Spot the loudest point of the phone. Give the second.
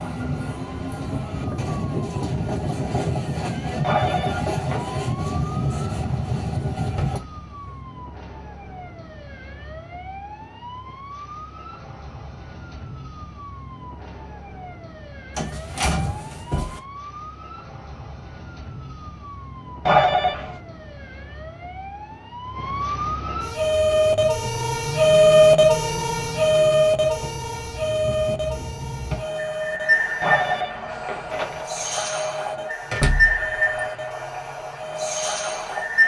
20 s.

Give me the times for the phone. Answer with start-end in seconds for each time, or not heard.
3.8-5.0, 19.9-20.6, 30.2-31.6.